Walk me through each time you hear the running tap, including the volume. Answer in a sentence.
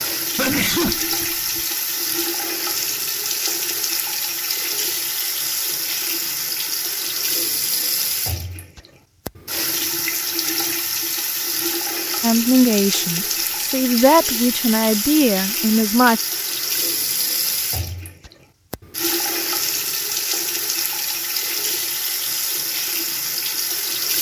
The running tap can be heard from 0.0 to 24.1 s, at a steady volume.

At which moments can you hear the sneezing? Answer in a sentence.
The sneezing can be heard from 0.3 to 1.6 s.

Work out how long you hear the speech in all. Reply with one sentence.
The speech can be heard for 4 seconds in total.